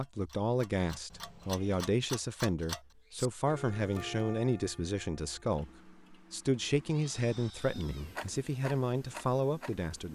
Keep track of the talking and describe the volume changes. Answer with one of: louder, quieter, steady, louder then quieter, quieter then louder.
steady.